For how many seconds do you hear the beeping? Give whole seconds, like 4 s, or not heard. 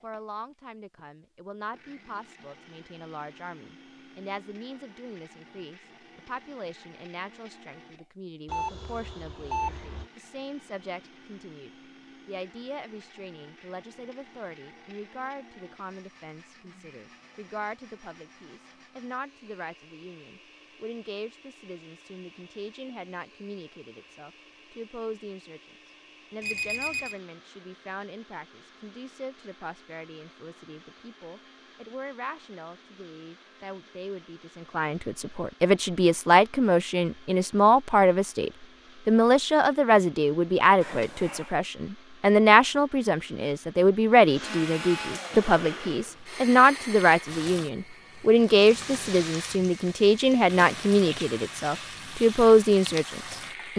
3 s.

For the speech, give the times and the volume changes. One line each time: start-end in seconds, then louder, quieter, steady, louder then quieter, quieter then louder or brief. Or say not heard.
0.0-53.7 louder.